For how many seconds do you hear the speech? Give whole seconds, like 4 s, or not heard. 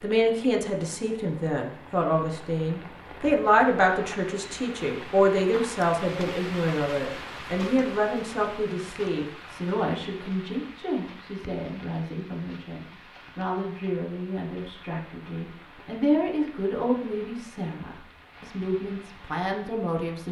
20 s.